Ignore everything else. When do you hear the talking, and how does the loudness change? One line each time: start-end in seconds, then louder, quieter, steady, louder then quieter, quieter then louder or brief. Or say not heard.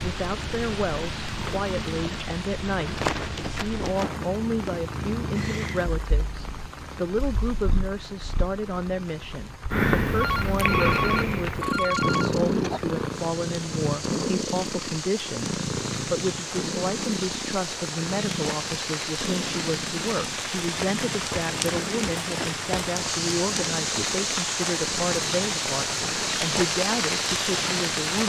0.0-28.2 steady.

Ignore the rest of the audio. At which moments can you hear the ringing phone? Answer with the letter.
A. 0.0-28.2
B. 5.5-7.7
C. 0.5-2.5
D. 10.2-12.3
D.